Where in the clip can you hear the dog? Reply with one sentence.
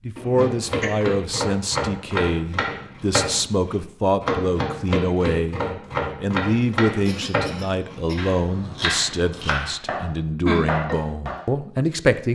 The dog can't be heard in this clip.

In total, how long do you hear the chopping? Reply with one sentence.
The chopping can be heard for 11 seconds in total.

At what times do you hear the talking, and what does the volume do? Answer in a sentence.
The talking can be heard from 0.1 to 12.3 s, at a steady volume.